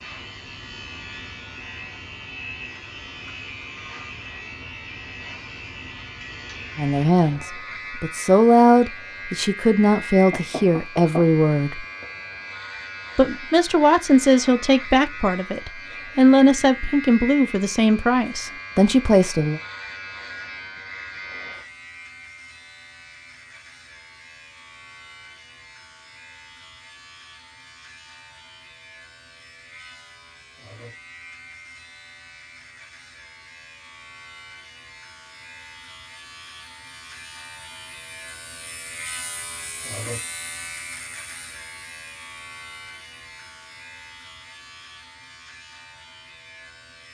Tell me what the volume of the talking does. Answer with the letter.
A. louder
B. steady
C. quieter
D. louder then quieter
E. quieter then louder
B.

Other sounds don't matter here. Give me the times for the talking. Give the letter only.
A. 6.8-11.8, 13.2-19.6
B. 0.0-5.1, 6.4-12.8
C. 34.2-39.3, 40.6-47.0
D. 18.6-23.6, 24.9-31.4
A.